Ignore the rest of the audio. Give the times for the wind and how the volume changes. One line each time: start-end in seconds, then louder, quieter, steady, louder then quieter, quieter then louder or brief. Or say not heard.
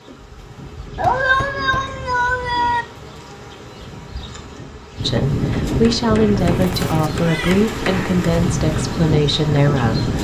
0.0-10.1 louder.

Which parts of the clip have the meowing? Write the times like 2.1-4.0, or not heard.
0.9-2.9, 6.5-7.7.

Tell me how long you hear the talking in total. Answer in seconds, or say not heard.
5 s.